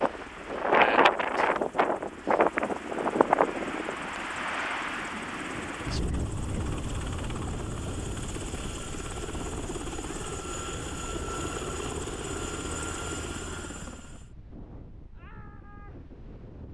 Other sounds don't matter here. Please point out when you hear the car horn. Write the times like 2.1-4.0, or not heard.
not heard.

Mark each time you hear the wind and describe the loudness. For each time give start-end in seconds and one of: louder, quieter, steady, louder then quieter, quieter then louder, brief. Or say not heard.
0.0-16.7 quieter.